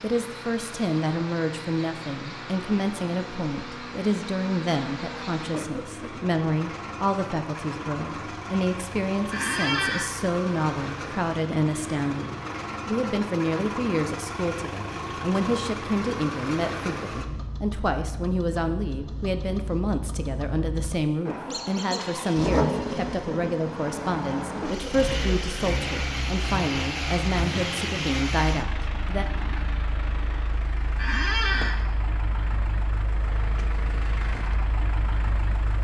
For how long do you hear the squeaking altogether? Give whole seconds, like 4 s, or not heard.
2 s.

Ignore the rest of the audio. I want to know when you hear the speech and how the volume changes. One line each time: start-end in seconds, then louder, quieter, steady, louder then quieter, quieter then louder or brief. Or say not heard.
0.0-29.2 steady.